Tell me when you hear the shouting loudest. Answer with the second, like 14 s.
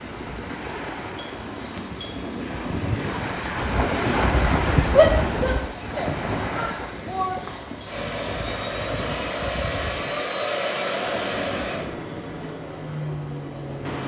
5 s.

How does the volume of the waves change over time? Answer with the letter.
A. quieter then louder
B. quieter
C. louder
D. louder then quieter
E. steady
D.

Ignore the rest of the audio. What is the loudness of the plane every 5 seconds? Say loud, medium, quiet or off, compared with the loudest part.
medium, loud, loud.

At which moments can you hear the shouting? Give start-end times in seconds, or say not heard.
5.0-7.4.